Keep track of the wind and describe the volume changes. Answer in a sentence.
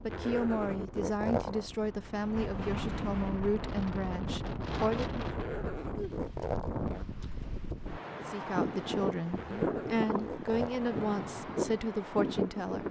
The volume of the wind goes up.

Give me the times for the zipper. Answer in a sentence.
The zipper can be heard from 0.1 to 1.6 s, from 5.2 to 7.0 s and from 9.3 to 11.2 s.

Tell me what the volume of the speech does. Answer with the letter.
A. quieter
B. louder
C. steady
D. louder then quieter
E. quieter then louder
C.